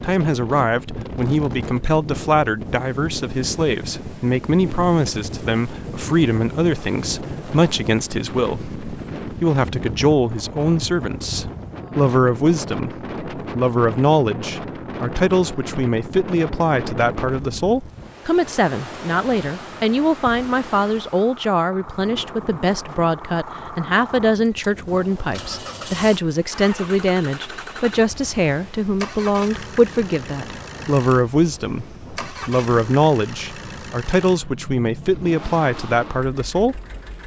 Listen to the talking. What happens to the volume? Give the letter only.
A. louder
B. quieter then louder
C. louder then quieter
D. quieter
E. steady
E.